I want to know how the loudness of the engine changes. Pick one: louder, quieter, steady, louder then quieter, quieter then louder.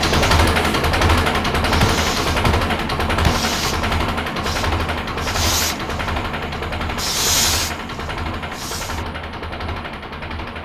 quieter.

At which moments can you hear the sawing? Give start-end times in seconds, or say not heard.
not heard.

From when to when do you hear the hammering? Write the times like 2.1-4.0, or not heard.
1.8-3.4.